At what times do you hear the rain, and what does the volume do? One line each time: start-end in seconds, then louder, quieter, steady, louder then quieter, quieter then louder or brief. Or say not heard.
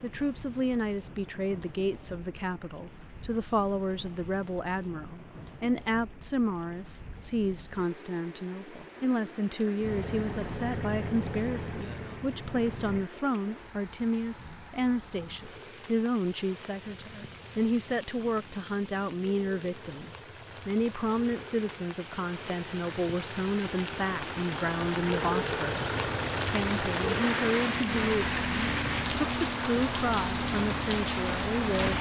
0.0-31.9 louder.